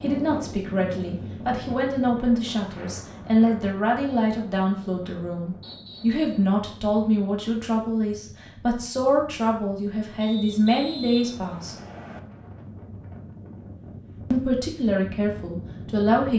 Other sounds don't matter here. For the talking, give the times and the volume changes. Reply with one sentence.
The talking can be heard from 0.0 to 11.8 s, at a steady volume; and briefly from 14.3 to 16.3 s.